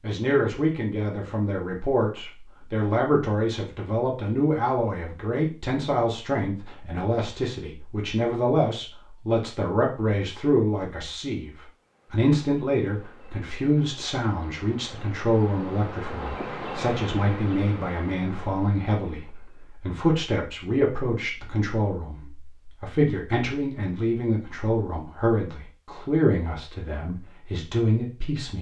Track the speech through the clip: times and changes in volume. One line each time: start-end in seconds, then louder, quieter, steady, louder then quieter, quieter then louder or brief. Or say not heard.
0.0-28.5 steady.